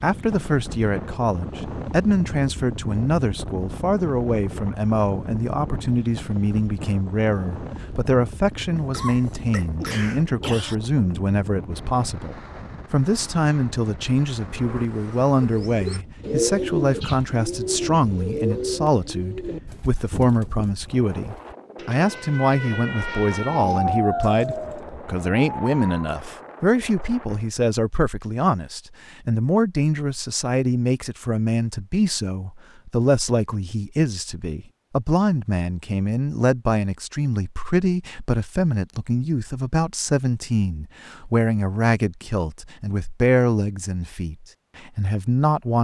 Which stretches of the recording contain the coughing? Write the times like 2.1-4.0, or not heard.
8.8-10.8.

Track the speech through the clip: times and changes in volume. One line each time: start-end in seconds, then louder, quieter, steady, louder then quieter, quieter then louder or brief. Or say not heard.
0.0-45.7 steady.